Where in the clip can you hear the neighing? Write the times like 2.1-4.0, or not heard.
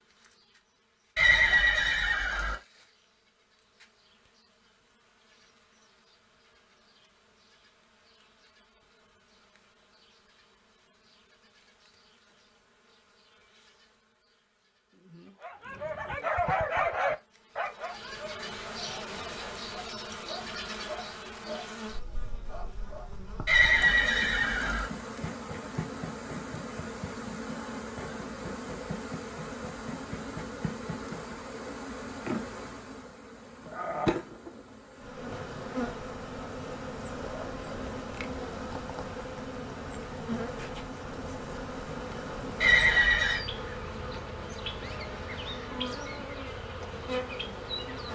1.1-2.5, 23.4-24.9, 42.6-43.5.